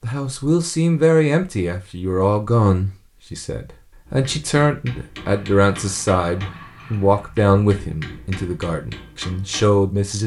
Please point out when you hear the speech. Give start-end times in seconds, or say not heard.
0.0-10.2.